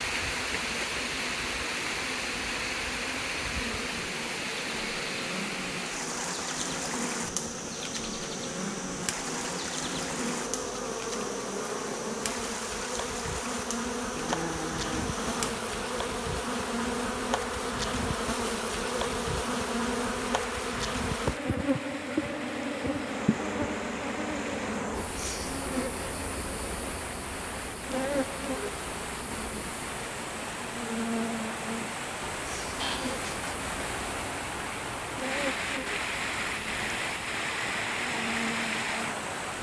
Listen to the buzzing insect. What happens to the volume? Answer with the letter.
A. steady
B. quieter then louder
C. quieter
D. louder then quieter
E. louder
D.